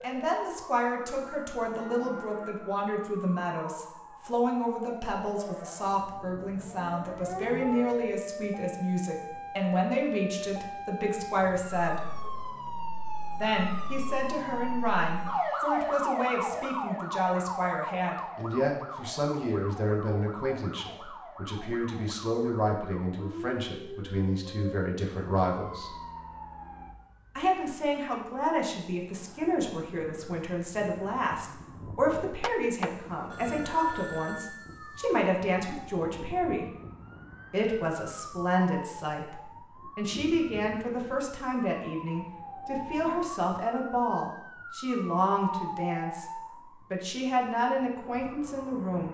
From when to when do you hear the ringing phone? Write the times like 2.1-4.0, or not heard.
32.4-35.1.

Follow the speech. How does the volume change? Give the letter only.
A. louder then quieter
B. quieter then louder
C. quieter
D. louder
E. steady
E.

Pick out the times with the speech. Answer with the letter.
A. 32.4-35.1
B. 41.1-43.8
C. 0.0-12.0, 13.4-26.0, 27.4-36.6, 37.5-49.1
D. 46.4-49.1
C.